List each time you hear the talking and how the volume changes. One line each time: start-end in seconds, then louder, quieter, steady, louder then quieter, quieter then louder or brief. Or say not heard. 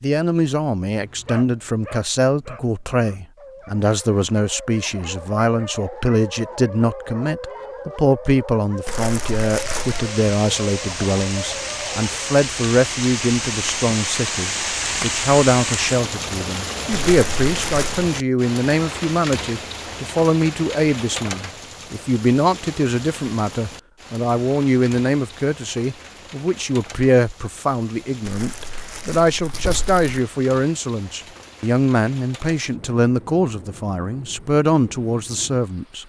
0.0-36.0 steady.